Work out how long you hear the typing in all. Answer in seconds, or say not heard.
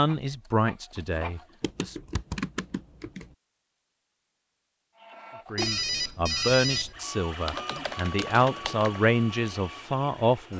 3 s.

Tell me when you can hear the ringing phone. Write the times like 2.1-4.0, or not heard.
5.5-7.0.